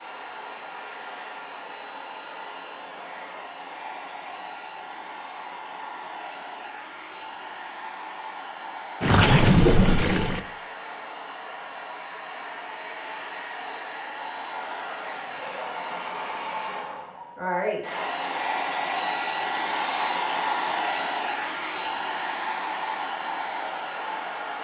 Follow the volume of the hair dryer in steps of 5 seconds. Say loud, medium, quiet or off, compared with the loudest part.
medium, medium, medium, loud, loud.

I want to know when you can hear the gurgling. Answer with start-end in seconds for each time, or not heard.
9.0-10.4.